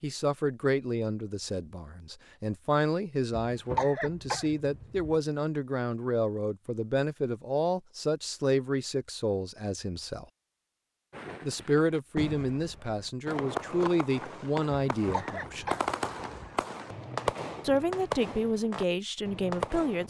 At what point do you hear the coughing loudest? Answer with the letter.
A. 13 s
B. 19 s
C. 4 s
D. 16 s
C.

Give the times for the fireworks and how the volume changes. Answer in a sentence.
The fireworks can be heard from 11.1 to 20.0 s, getting louder.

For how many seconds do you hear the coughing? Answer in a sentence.
You can hear the coughing for 3 seconds altogether.